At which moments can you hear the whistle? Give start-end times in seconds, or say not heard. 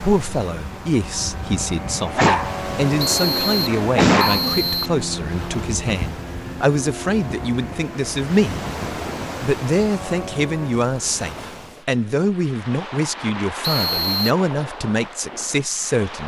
3.0-4.9, 13.6-14.3.